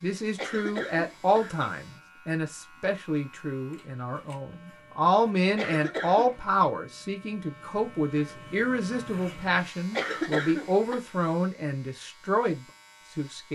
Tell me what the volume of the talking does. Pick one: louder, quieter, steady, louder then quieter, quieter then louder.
steady.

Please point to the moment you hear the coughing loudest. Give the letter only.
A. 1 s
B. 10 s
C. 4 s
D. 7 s
B.